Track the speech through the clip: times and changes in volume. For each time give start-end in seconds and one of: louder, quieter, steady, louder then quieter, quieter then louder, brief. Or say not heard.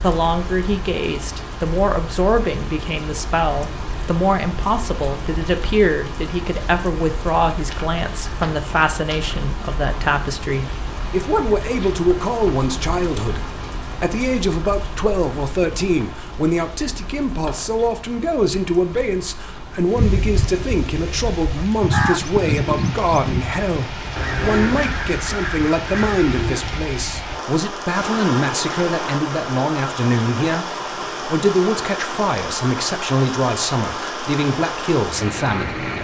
0.0-35.8 steady.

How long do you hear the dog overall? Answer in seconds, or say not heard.
not heard.